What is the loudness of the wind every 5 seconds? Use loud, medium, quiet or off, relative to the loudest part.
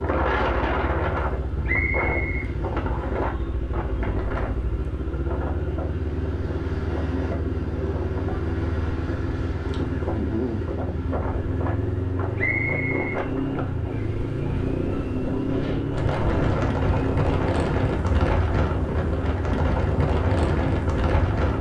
loud, medium, medium, loud, loud.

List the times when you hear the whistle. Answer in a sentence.
The whistle can be heard from 1.6 to 3.2 s and from 12.3 to 13.2 s.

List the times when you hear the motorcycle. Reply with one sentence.
You can hear the motorcycle from 0.0 to 21.5 s.